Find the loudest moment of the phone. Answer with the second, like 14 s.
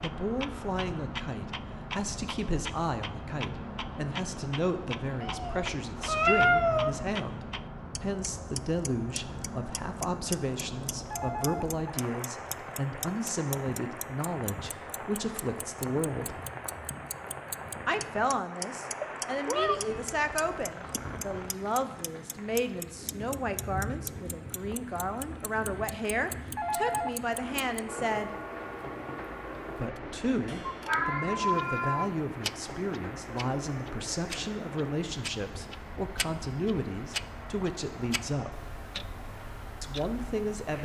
27 s.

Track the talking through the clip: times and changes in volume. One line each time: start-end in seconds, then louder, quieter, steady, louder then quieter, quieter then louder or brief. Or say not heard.
0.0-16.4 steady
17.9-28.4 steady
29.8-38.6 steady
39.8-40.8 brief.